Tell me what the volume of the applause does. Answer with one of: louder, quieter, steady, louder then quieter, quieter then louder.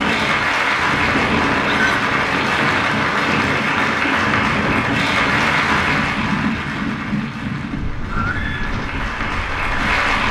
quieter.